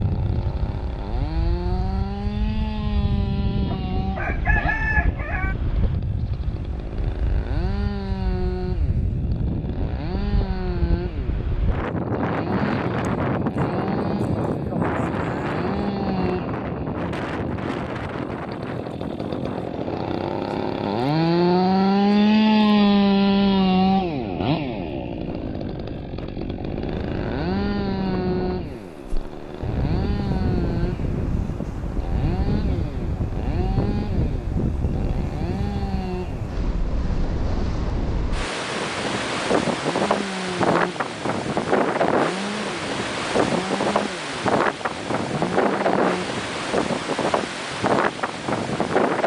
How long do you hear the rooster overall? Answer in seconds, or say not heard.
2 s.